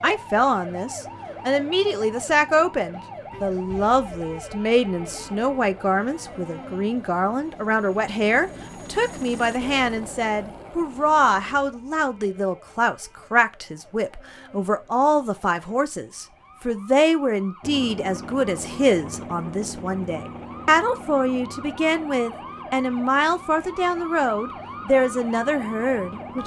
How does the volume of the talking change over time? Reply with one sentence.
The volume of the talking stays about the same.